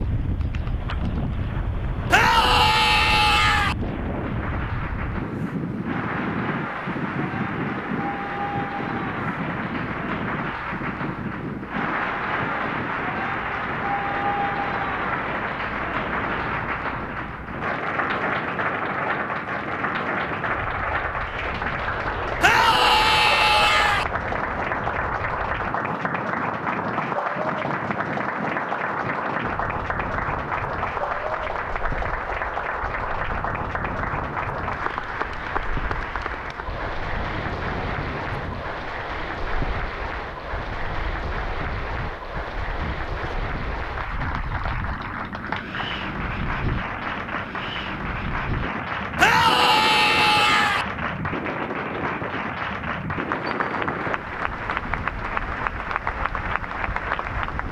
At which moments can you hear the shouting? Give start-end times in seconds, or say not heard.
2.1-3.8, 22.4-24.1, 49.1-50.9.